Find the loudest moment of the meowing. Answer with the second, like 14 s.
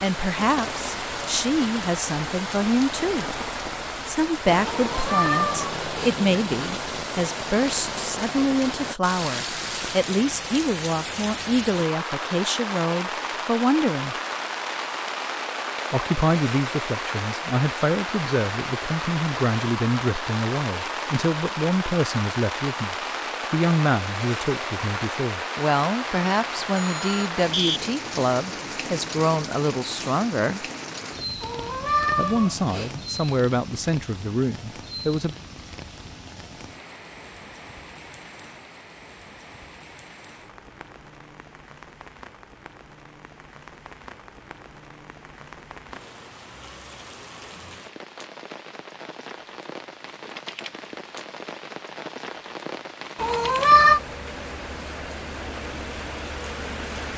54 s.